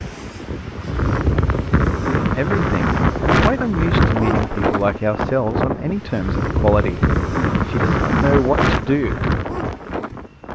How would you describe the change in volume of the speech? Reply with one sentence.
The volume of the speech stays about the same.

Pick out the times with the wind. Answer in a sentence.
You can hear the wind from 0.0 to 10.4 s.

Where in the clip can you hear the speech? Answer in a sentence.
The speech can be heard from 2.1 to 9.2 s.